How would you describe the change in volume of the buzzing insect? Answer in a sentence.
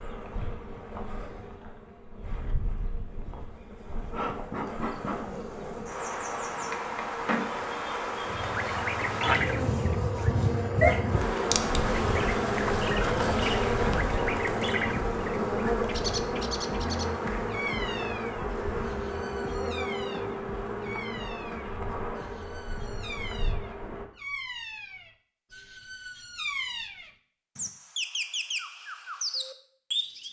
The volume of the buzzing insect goes up, then down.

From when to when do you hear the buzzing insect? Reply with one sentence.
The buzzing insect can be heard from 0.0 to 24.1 s.